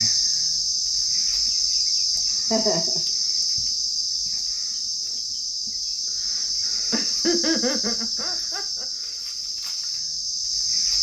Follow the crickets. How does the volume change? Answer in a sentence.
The volume of the crickets goes down.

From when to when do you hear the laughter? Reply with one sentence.
The laughter can be heard from 2.1 to 3.5 s and from 6.9 to 8.8 s.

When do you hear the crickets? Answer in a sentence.
The crickets can be heard from 0.0 to 10.9 s.